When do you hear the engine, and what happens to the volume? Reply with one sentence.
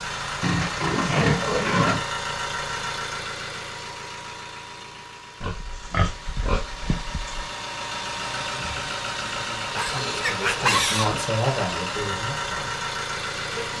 You can hear the engine from 0.0 to 13.7 s, getting quieter then louder.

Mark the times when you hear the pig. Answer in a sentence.
The pig can be heard from 0.4 to 2.0 s, from 5.4 to 7.5 s and from 9.8 to 11.2 s.